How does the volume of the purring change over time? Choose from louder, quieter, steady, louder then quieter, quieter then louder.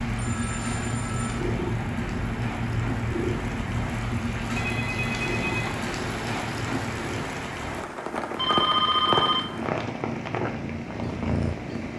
quieter then louder.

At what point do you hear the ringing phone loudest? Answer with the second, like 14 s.
9 s.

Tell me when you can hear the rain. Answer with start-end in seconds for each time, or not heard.
0.0-11.9.